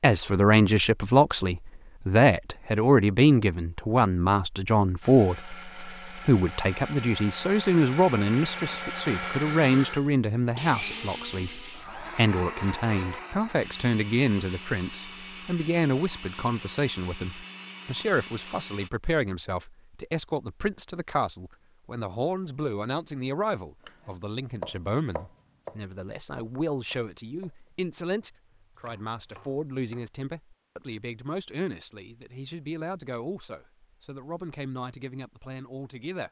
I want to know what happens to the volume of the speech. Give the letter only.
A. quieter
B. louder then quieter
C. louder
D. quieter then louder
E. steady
A.